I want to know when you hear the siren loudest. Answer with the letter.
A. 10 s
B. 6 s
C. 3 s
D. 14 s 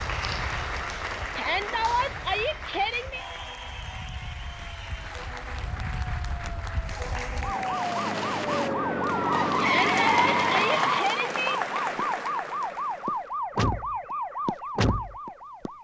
A.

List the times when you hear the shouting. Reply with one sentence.
The shouting can be heard from 1.4 to 3.2 s and from 9.6 to 11.6 s.